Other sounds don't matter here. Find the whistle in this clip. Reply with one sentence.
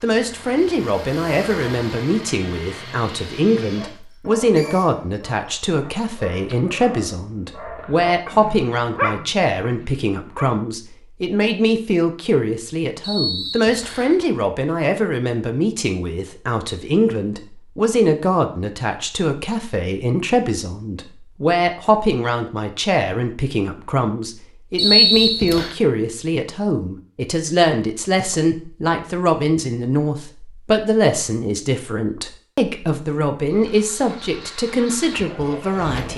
You can hear the whistle from 4.1 to 5.0 s, from 13.0 to 14.2 s and from 24.8 to 25.7 s.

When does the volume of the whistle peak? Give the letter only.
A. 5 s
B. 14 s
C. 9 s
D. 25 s
D.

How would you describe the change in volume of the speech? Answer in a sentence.
The volume of the speech stays about the same.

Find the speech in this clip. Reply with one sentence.
You can hear the speech from 0.0 to 36.1 s.